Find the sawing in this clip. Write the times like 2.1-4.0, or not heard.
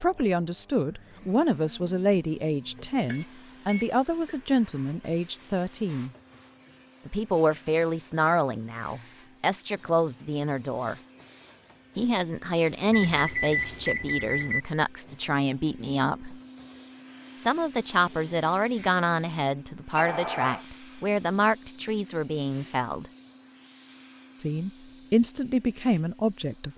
not heard.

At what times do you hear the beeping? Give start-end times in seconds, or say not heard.
3.0-4.3, 12.9-14.7, 19.9-20.6.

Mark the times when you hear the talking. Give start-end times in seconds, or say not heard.
0.0-6.1, 7.0-10.9, 11.9-16.4, 17.4-23.1, 24.4-26.7.